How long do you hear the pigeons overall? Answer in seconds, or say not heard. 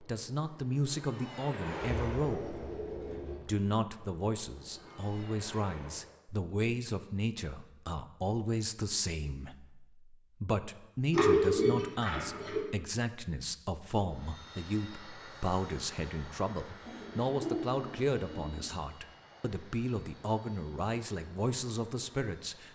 5 s.